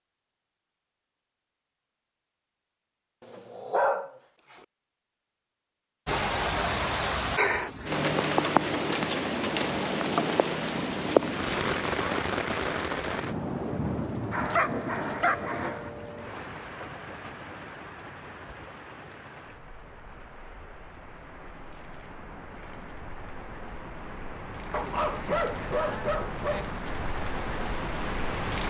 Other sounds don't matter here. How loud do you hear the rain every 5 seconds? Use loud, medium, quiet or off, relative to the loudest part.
off, loud, loud, quiet, quiet, medium.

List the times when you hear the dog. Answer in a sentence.
You can hear the dog from 3.2 to 4.1 s, from 14.3 to 15.9 s and from 24.7 to 26.8 s.